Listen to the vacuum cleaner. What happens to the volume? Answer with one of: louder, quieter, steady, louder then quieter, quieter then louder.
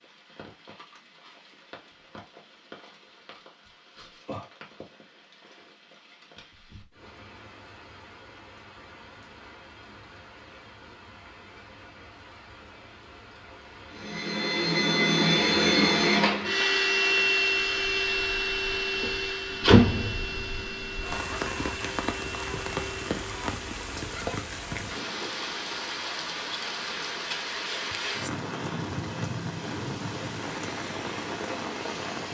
quieter.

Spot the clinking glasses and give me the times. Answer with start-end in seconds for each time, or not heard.
not heard.